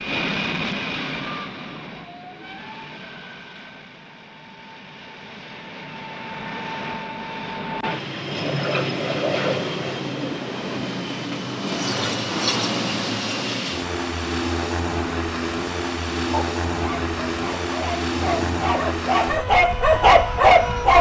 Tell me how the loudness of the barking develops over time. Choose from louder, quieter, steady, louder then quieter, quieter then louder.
louder.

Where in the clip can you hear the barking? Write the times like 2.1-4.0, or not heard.
16.1-20.9.